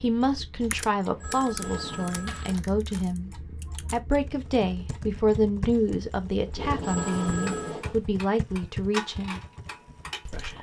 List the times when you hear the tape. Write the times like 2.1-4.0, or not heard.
1.4-2.1, 6.5-8.0.